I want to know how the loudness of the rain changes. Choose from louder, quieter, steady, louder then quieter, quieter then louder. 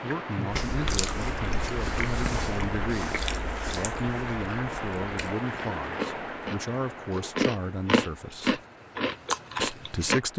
quieter.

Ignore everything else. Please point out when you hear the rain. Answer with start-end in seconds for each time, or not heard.
0.0-10.3.